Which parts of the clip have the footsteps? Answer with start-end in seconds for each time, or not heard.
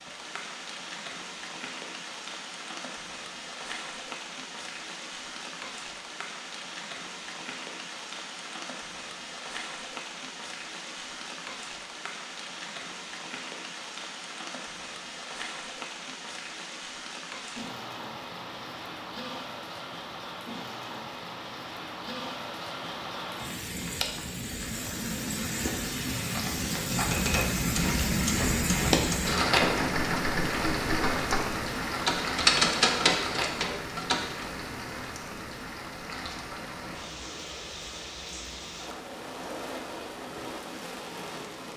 not heard.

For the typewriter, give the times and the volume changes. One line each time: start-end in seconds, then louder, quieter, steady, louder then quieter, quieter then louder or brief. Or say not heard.
27.1-34.2 louder.